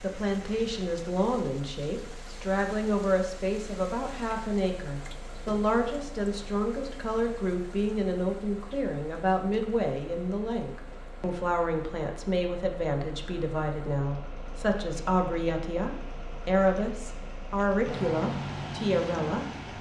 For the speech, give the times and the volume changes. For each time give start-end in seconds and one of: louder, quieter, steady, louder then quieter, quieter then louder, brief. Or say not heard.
0.0-19.4 steady.